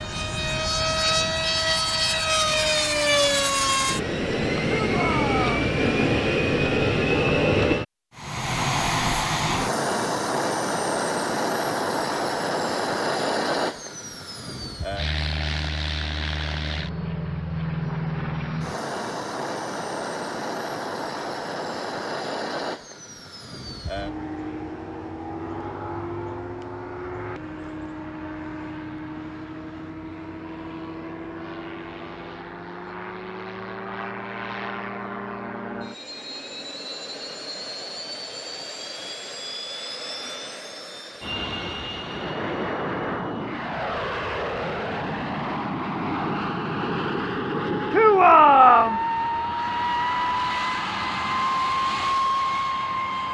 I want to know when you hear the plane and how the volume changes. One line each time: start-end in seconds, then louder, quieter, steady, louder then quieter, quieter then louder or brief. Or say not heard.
0.0-53.3 quieter then louder.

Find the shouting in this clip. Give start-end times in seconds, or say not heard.
4.7-5.8, 47.9-49.0.